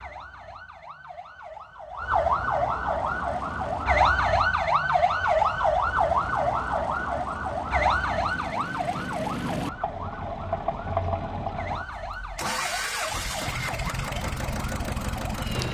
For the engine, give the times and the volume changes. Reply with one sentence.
The engine can be heard from 3.0 to 15.6 s, getting louder.